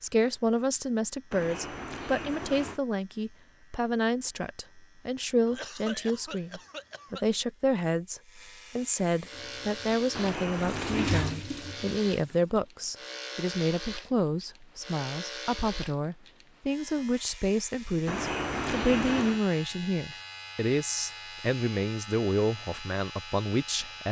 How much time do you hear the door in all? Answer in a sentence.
You can hear the door for 4 seconds altogether.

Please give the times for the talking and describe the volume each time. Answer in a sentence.
The talking can be heard from 0.0 to 24.0 s, at a steady volume.